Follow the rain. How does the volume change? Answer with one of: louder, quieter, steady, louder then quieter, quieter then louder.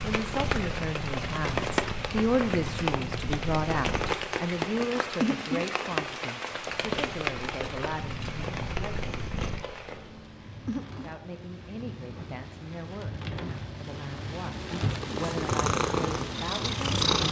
quieter then louder.